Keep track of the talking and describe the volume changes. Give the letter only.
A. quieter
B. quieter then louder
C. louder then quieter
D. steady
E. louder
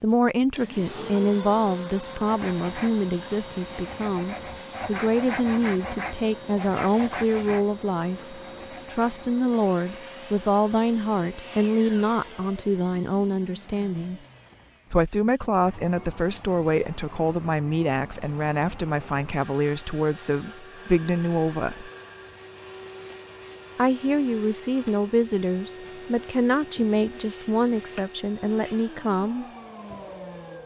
D.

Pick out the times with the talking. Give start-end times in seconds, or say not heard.
0.0-14.2, 14.9-21.9, 23.8-29.4.